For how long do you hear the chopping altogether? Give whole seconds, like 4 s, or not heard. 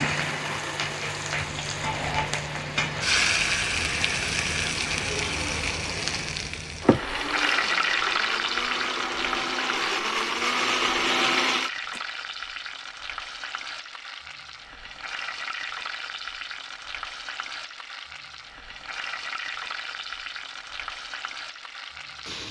not heard.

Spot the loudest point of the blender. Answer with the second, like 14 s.
11 s.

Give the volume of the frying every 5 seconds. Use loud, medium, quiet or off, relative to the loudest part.
loud, loud, medium, medium, medium.